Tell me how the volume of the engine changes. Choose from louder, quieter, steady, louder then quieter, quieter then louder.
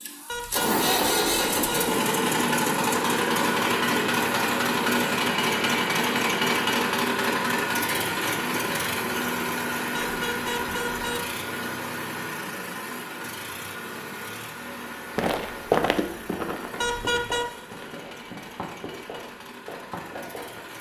quieter.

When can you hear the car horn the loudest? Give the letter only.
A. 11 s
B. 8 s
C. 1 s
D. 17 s
D.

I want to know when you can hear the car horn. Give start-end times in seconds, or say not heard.
0.2-1.9, 9.9-11.3, 16.8-17.4.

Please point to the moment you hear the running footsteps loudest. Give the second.
16 s.